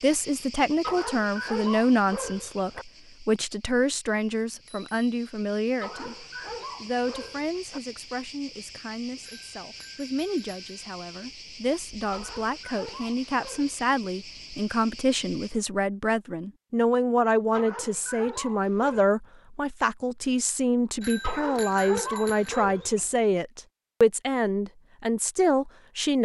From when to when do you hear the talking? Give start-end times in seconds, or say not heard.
0.0-26.2.